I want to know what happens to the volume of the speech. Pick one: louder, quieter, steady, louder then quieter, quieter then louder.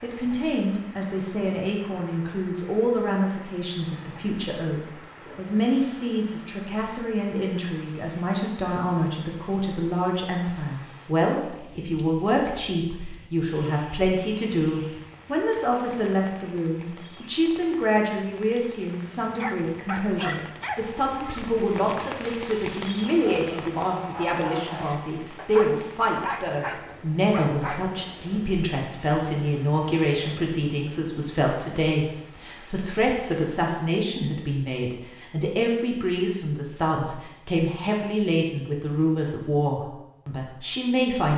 steady.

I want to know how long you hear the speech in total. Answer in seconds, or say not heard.
41 s.